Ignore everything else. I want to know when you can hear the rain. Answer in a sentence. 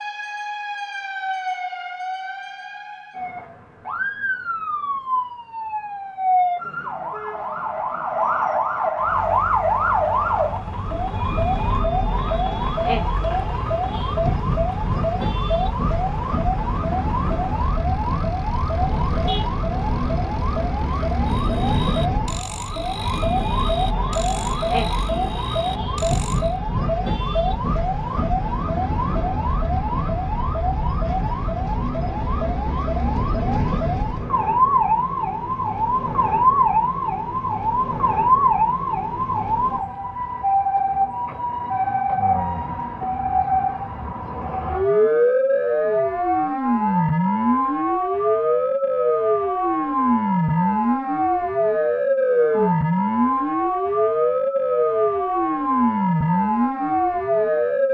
You can't hear the rain here.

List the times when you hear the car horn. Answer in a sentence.
You can hear the car horn from 18.7 to 20.1 s.